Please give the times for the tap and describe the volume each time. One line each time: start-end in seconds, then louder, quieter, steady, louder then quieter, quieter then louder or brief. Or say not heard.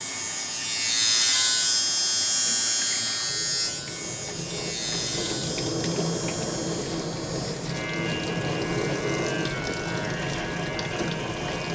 0.0-11.7 louder.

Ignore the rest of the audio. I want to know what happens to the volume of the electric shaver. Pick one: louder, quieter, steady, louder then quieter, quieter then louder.
quieter.